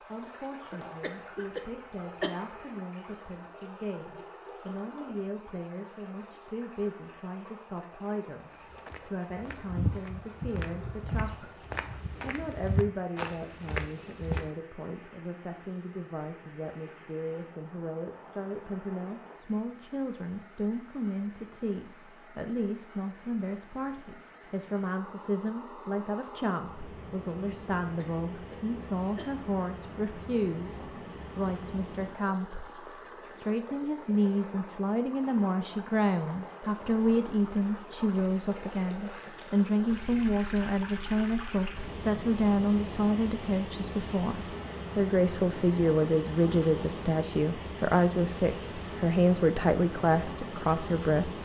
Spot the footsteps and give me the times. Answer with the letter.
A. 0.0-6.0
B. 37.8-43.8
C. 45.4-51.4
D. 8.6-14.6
D.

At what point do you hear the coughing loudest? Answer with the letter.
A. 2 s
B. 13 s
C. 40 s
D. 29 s
A.